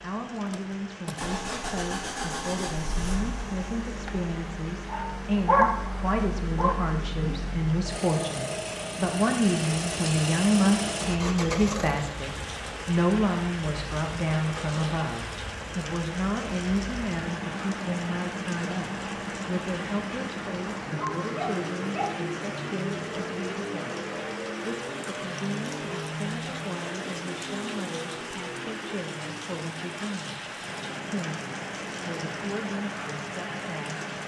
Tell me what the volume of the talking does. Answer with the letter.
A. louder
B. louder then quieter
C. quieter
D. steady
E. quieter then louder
B.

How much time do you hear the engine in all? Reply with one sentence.
You can hear the engine for 34 seconds altogether.